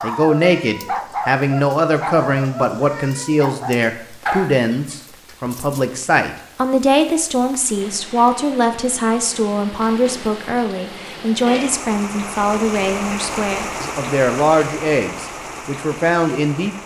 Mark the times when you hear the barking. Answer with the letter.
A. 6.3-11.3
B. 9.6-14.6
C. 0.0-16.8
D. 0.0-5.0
D.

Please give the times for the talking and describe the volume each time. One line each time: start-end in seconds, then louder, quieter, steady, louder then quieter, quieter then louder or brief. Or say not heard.
0.0-16.8 steady.